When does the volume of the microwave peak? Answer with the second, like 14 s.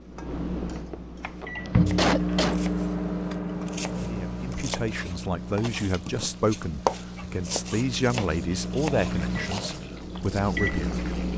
2 s.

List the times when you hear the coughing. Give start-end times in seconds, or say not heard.
1.6-2.6, 8.9-9.7.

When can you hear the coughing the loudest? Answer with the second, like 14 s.
2 s.